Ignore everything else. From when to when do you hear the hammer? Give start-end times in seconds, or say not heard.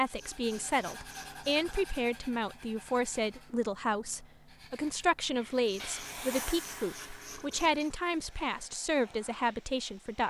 not heard.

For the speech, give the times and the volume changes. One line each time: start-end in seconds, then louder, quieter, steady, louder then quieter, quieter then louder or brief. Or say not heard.
0.0-10.2 steady.